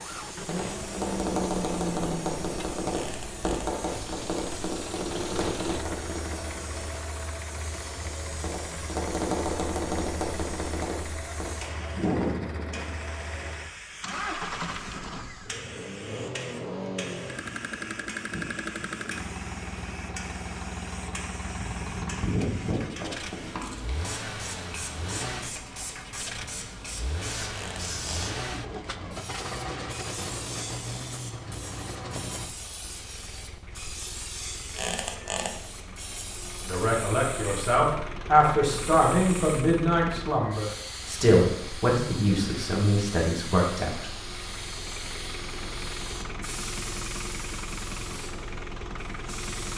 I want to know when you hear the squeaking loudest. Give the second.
35 s.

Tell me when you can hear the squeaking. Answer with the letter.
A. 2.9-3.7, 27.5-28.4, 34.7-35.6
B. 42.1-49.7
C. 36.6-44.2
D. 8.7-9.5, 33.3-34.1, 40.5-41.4
A.